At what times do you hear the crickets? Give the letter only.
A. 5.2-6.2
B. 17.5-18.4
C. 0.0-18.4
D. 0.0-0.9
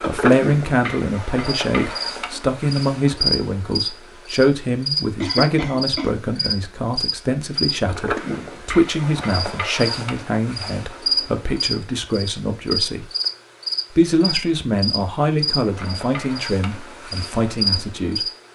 C.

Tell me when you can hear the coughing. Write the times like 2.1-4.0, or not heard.
5.2-6.2.